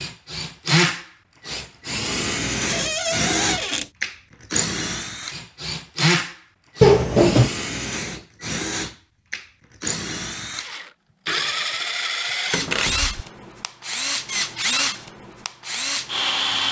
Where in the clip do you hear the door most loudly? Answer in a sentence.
The volume of the door peaks at 7 seconds.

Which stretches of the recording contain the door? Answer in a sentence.
The door can be heard from 2.6 to 3.9 s, from 6.8 to 7.5 s and from 12.5 to 13.2 s.